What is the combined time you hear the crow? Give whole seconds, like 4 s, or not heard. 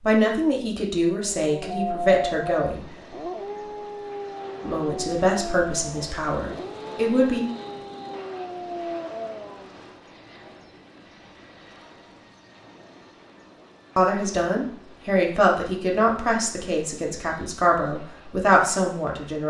not heard.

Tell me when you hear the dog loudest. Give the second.
2 s.